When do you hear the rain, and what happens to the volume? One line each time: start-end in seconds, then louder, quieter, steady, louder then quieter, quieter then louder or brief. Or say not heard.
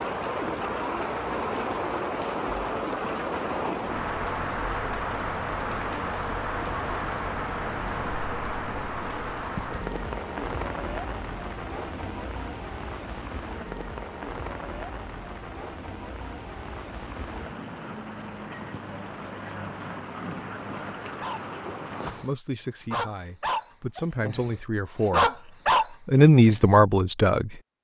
0.0-22.3 quieter.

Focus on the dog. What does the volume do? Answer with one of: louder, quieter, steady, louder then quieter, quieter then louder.
louder.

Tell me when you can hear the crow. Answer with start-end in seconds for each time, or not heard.
not heard.